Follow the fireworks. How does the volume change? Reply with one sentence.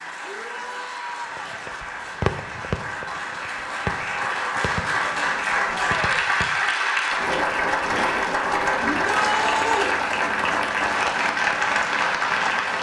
The loudness of the fireworks goes down.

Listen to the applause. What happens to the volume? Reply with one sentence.
The loudness of the applause goes up.